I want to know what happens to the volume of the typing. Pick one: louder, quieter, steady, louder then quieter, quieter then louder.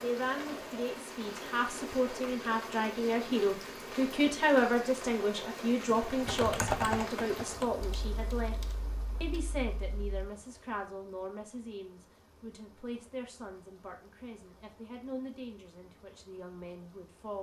quieter.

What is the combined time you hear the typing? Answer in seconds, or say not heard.
4 s.